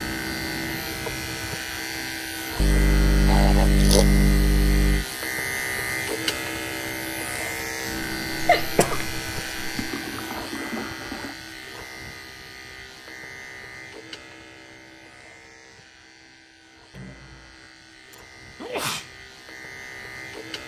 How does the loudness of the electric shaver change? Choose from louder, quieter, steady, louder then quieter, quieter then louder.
quieter.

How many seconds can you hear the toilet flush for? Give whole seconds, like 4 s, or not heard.
3 s.